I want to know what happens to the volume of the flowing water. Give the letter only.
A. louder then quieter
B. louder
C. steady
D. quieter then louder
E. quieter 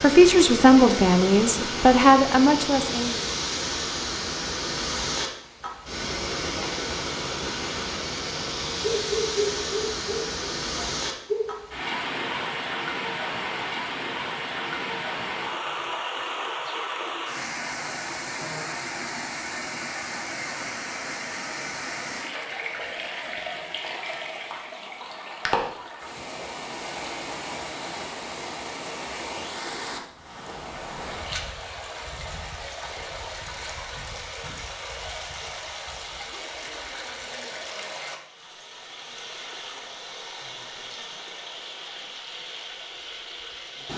E.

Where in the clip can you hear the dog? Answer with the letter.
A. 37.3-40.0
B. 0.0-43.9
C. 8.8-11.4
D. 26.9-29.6
C.